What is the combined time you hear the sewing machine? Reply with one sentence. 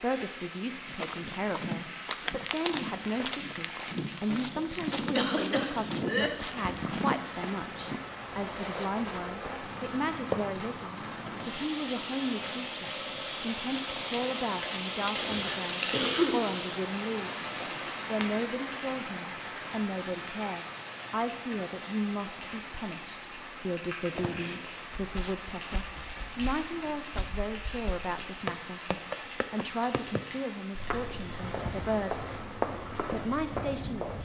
The sewing machine can't be heard in this clip.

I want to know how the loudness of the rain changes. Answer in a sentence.
The loudness of the rain goes up, then down.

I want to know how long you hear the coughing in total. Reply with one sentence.
The coughing can be heard for 4 seconds in total.